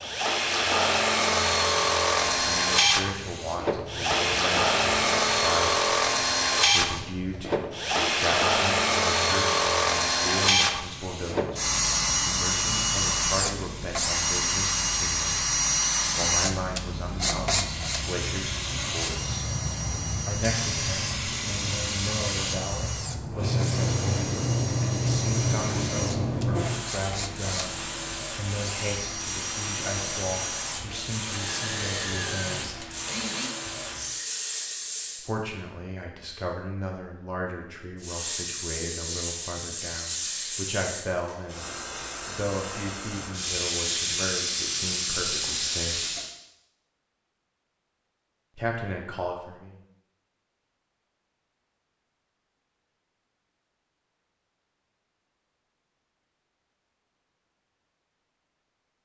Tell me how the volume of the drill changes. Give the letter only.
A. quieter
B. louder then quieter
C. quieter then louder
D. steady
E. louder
A.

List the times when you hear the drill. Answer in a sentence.
The drill can be heard from 0.0 to 33.5 s.